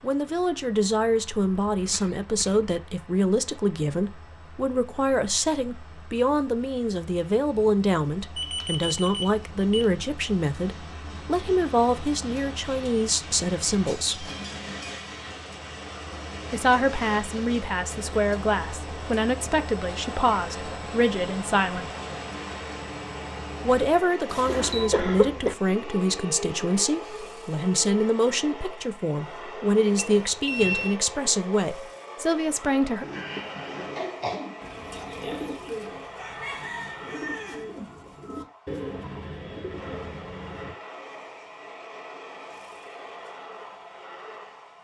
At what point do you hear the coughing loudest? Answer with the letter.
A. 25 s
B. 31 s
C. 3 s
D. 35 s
A.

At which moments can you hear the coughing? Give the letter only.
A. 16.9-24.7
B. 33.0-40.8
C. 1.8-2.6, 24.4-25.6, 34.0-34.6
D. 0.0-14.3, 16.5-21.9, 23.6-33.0
C.